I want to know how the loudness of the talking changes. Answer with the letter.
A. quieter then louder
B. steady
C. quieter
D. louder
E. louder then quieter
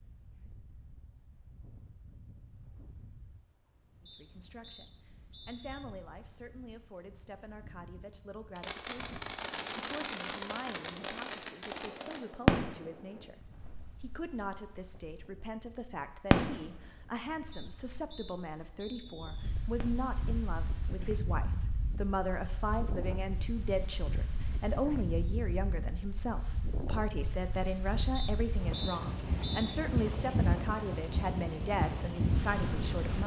D.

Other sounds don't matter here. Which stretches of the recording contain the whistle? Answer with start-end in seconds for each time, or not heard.
4.0-5.8, 17.5-19.6, 28.1-29.8.